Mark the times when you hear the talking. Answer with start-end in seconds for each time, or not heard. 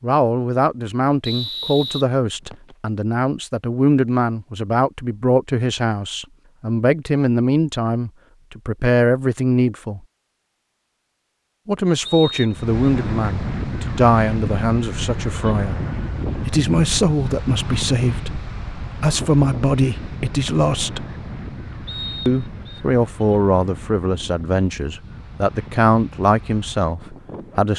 0.0-10.0, 11.7-15.8, 16.4-21.1, 22.2-27.7.